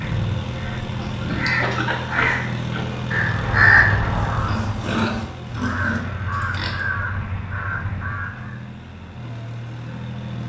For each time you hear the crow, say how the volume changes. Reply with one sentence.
You can hear the crow from 0.0 to 8.6 s, getting louder then quieter.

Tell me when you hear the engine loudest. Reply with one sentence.
The volume of the engine peaks at 3 seconds.